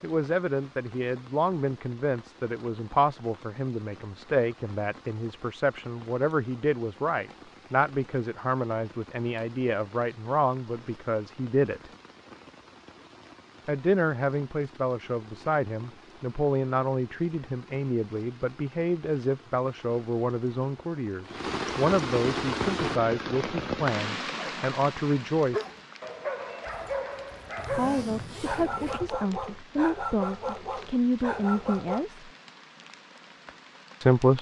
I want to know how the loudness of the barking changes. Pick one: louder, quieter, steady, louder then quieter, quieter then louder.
steady.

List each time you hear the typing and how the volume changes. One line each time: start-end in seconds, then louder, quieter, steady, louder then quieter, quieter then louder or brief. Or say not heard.
not heard.